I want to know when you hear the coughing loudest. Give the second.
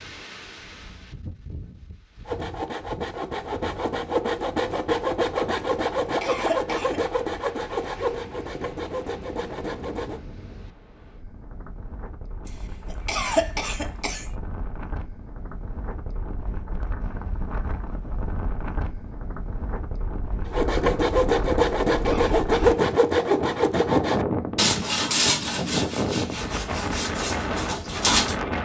13 s.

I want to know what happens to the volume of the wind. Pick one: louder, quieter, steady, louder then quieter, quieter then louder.
louder.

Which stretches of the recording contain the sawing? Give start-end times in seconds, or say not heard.
2.2-10.2, 20.4-28.4.